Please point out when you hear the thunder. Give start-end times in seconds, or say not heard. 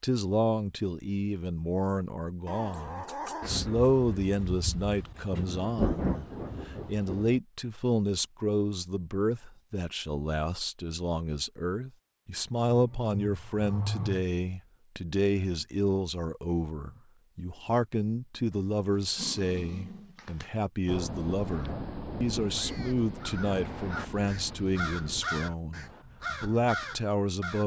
3.4-7.4, 20.9-25.3.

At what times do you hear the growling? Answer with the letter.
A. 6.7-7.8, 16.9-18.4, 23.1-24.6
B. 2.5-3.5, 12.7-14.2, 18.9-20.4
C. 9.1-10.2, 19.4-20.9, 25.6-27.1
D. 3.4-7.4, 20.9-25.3
B.